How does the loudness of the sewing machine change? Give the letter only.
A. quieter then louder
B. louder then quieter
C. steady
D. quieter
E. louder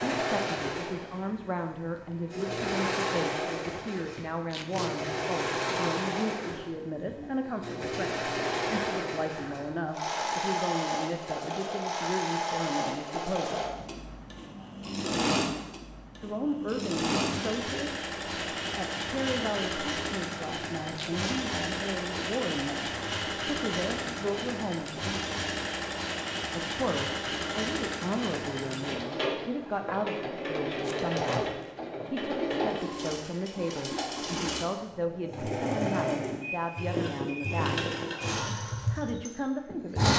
C.